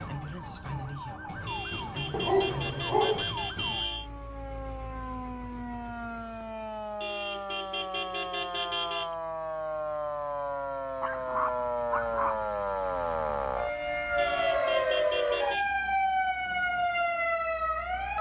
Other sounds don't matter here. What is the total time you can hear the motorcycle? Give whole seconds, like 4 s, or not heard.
not heard.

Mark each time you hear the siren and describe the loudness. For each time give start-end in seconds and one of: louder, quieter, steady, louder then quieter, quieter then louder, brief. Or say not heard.
0.0-18.1 louder.